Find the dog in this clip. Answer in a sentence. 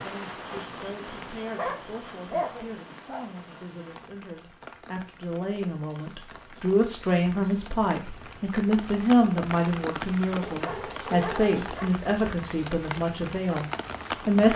You can hear the dog from 1.2 to 3.2 s and from 10.4 to 11.9 s.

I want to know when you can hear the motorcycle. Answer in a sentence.
You can't hear the motorcycle here.